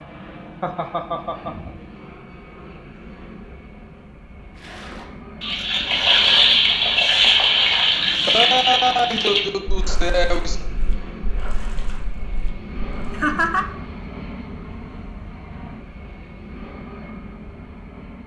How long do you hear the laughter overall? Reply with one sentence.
You can hear the laughter for 4 seconds altogether.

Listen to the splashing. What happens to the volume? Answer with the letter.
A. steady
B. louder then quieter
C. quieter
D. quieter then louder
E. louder
C.